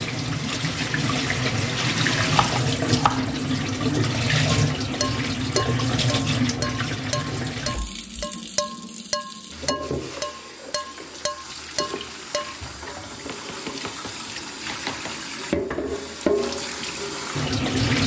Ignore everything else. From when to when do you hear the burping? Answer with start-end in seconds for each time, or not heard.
not heard.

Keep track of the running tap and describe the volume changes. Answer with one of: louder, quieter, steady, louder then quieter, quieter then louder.
quieter then louder.